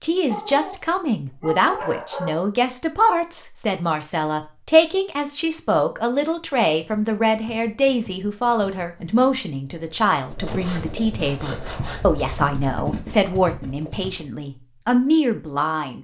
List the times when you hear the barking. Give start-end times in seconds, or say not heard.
0.3-2.5.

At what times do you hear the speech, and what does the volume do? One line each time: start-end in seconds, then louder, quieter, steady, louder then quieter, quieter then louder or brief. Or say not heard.
0.0-15.9 steady.